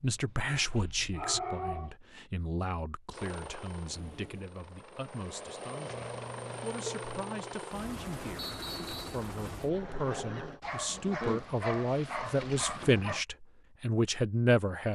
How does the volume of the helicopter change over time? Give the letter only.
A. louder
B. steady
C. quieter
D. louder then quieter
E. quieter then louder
A.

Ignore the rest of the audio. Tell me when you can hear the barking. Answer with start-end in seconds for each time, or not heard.
0.0-1.9, 5.9-7.7, 10.6-13.2.